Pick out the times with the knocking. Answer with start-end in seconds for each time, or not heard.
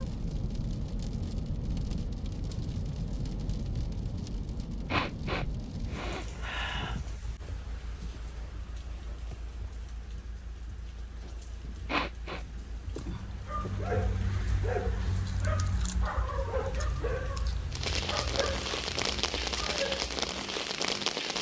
not heard.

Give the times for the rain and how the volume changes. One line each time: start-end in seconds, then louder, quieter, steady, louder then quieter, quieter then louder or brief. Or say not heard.
0.0-21.3 quieter then louder.